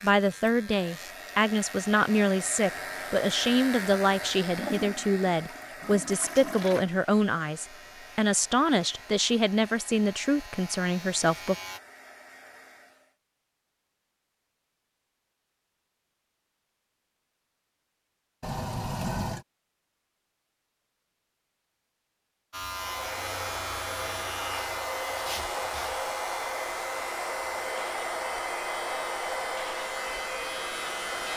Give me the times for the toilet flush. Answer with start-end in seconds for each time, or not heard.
4.5-6.8, 18.4-19.4.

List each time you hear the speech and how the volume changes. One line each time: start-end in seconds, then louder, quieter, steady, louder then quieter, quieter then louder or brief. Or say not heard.
0.0-11.6 steady.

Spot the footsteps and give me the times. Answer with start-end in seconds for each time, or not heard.
not heard.